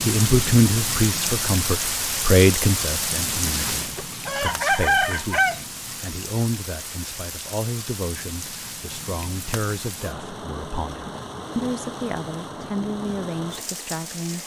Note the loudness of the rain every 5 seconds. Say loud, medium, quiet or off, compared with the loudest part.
loud, medium, medium.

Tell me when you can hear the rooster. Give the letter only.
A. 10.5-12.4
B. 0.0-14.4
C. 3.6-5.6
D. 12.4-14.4
C.